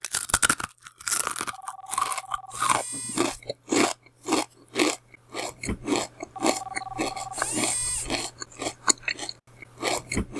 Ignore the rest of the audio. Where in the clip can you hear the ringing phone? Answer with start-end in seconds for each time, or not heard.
1.5-3.3, 6.3-8.1.